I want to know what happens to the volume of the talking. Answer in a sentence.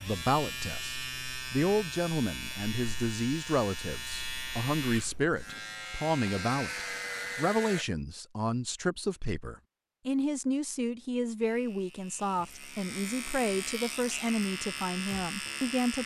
The volume of the talking stays about the same.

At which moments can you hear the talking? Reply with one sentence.
You can hear the talking from 0.0 to 16.0 s.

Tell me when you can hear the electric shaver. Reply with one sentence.
You can hear the electric shaver from 0.0 to 7.8 s and from 11.4 to 16.0 s.